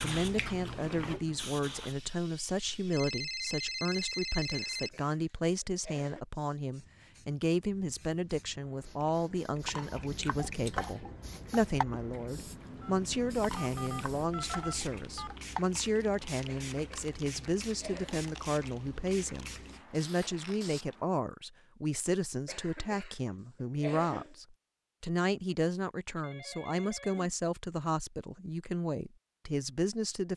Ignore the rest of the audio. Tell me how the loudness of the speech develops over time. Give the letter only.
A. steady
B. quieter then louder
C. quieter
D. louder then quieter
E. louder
A.